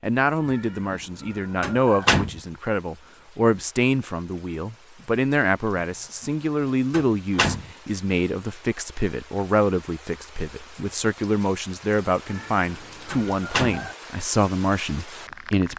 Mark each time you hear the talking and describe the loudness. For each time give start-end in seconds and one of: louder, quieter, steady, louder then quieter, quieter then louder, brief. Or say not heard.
0.0-15.7 steady.